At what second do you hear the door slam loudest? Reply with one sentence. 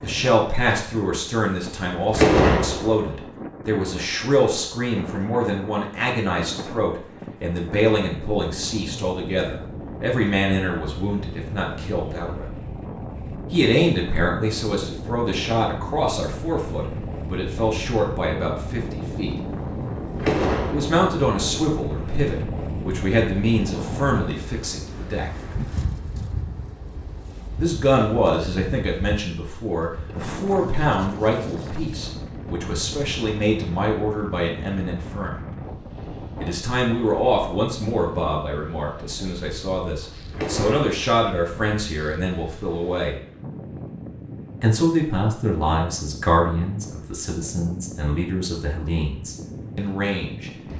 The loudest moment of the door slam is at 2 seconds.